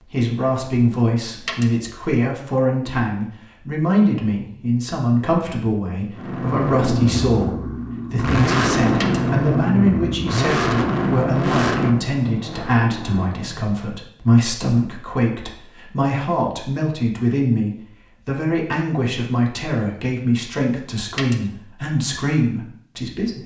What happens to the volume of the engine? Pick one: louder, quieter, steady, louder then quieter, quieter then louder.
quieter.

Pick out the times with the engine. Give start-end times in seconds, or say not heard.
6.1-13.8.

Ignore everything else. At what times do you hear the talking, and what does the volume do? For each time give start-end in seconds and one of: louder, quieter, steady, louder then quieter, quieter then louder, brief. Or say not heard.
0.0-23.4 steady.